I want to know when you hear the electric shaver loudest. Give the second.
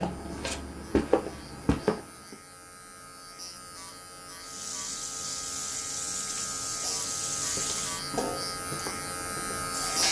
10 s.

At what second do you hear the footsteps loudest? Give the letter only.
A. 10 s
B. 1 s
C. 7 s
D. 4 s
B.